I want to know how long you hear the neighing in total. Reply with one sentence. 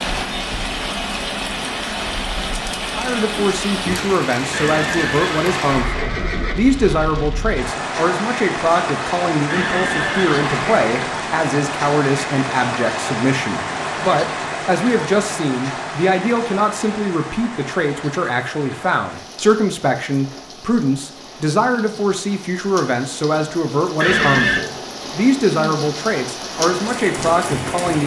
You can hear the neighing for 4 seconds altogether.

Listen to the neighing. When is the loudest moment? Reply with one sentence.
The volume of the neighing peaks at 24 seconds.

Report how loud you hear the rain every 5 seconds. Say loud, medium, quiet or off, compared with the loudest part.
loud, loud, loud, medium, medium, loud.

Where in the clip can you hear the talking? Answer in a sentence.
You can hear the talking from 3.0 to 28.0 s.